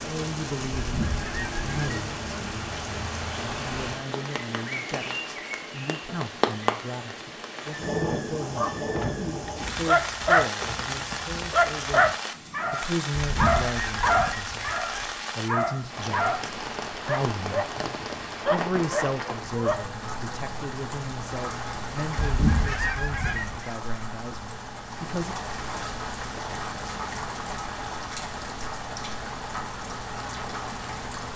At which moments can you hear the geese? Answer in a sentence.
You can hear the geese from 0.8 to 1.9 s, from 13.2 to 15.2 s and from 22.1 to 23.7 s.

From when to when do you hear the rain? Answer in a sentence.
You can hear the rain from 0.0 to 31.3 s.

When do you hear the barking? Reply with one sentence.
You can hear the barking from 8.6 to 19.9 s.